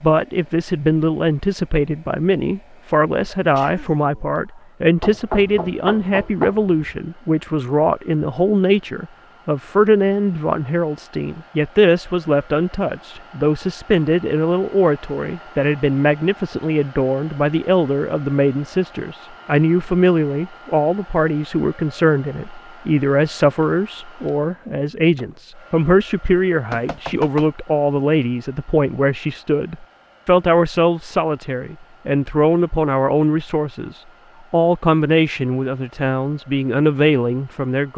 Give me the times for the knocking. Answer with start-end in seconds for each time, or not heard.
5.0-6.8, 26.7-27.5.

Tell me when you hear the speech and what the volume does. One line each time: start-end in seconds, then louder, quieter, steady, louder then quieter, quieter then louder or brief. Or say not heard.
0.0-37.9 steady.